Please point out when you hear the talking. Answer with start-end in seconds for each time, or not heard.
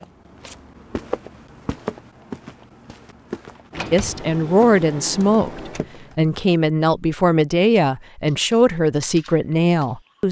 3.9-10.2.